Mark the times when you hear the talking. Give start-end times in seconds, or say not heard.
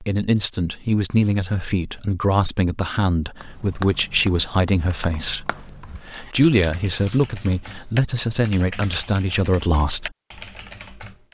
0.0-10.1.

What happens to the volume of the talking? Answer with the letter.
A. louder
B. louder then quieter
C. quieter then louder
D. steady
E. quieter
D.